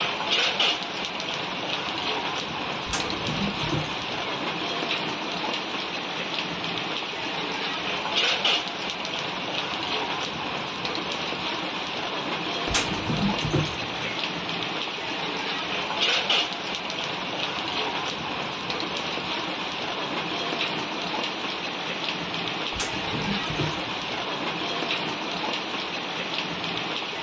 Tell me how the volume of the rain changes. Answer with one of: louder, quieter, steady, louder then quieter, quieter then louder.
steady.